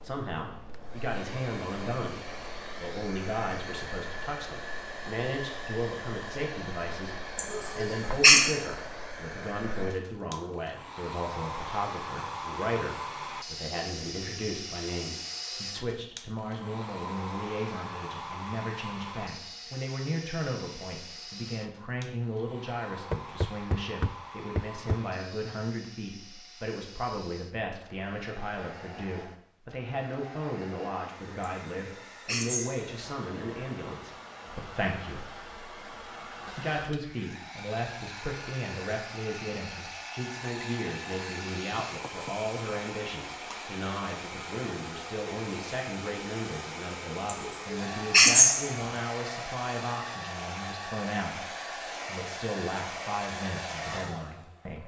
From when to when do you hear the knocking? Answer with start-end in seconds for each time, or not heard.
23.1-25.0, 42.0-42.8.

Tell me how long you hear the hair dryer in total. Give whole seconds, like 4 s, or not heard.
55 s.